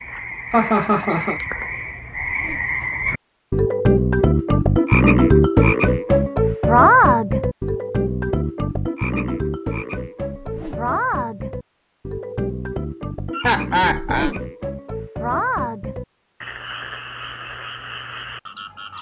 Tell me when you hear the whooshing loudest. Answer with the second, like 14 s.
14 s.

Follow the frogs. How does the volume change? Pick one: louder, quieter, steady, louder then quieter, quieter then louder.
louder then quieter.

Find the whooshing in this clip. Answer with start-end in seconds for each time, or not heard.
2.2-2.7, 10.3-10.8, 13.9-14.4.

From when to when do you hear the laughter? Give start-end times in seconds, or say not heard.
0.5-1.4, 13.3-14.3.